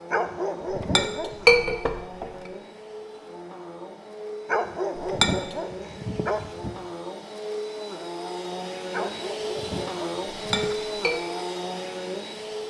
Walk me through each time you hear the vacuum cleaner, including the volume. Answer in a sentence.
You can hear the vacuum cleaner from 0.0 to 12.6 s, getting louder.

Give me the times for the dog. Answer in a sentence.
You can hear the dog from 0.1 to 1.8 s, from 4.5 to 6.8 s and from 8.9 to 10.8 s.